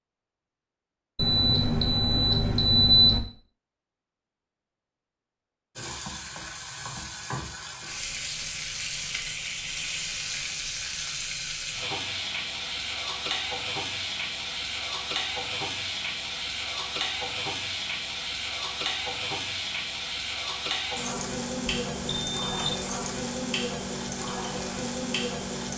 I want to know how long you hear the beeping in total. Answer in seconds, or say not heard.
3 s.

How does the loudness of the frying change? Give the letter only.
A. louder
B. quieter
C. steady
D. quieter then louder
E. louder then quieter
C.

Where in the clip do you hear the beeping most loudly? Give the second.
3 s.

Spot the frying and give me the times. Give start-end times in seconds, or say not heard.
5.8-25.7.